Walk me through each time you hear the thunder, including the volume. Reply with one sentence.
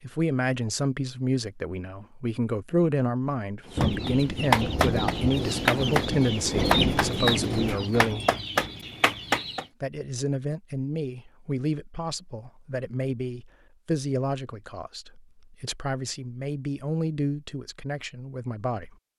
You can hear the thunder from 3.8 to 7.8 s, getting louder.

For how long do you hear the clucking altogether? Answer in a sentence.
The clucking can be heard for 6 seconds in total.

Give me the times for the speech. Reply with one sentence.
The speech can be heard from 0.0 to 8.2 s and from 9.8 to 18.9 s.